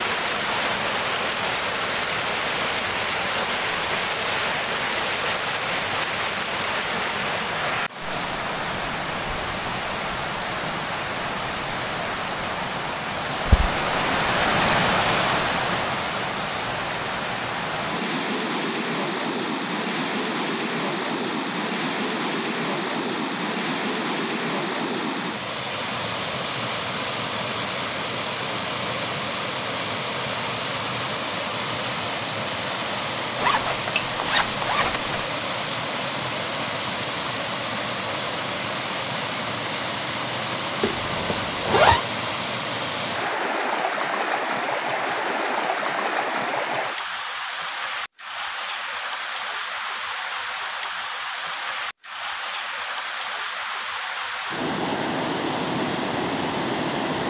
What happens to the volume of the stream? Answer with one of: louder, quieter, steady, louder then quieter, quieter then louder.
steady.